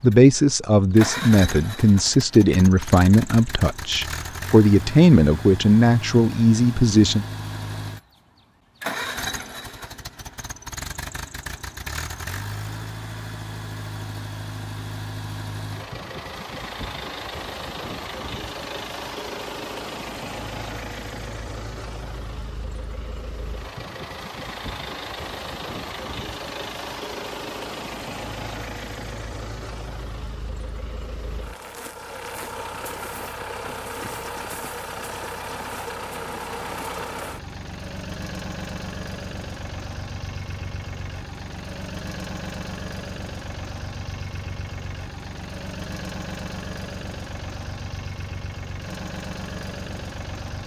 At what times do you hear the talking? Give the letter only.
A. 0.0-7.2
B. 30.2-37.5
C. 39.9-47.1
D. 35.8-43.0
A.